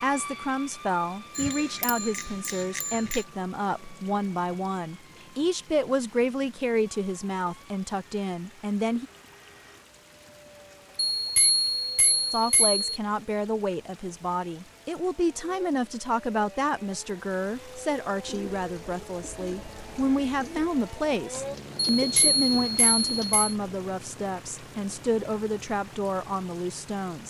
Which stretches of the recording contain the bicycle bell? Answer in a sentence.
You can hear the bicycle bell from 1.4 to 3.2 s, from 11.2 to 12.8 s and from 21.9 to 23.6 s.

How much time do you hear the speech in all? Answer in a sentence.
You can hear the speech for 24 seconds altogether.